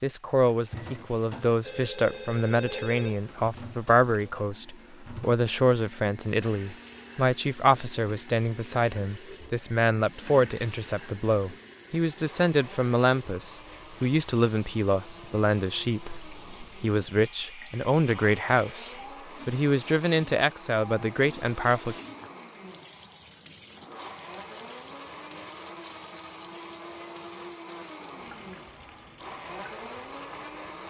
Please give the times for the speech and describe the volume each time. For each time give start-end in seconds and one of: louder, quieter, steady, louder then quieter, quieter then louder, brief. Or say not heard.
0.0-21.9 steady.